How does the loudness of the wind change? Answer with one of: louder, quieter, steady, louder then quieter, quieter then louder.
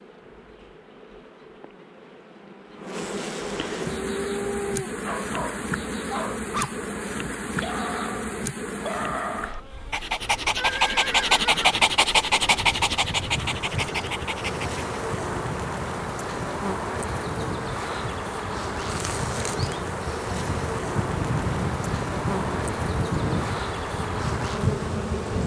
louder.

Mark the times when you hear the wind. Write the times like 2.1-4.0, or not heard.
12.4-25.4.